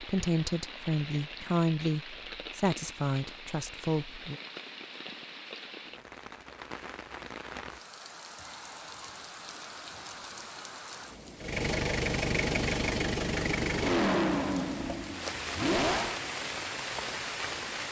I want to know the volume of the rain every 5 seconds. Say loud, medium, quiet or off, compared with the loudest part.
medium, medium, medium, loud.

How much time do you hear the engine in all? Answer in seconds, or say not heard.
5 s.